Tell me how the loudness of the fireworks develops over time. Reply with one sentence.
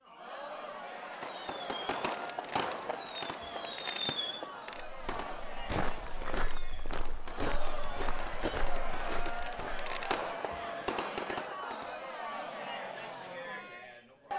The loudness of the fireworks goes down, then up.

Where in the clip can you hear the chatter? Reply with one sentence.
The chatter can be heard from 0.0 to 14.3 s.